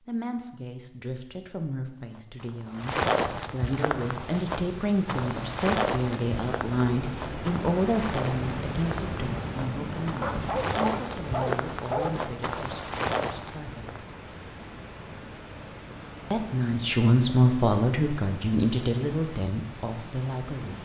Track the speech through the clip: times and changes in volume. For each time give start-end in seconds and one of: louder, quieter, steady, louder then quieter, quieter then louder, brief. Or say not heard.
0.0-13.9 louder then quieter
16.3-20.8 quieter.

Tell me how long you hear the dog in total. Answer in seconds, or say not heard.
2 s.